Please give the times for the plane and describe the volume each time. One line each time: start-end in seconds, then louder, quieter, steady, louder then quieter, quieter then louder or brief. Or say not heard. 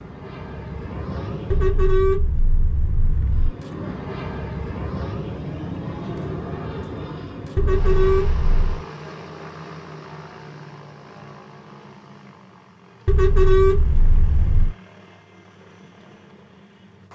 0.0-1.9 brief
3.2-17.1 quieter.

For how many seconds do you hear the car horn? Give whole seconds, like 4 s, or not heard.
5 s.